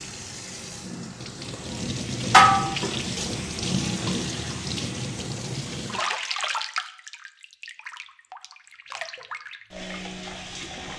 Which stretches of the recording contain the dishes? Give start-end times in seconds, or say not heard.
2.3-2.8.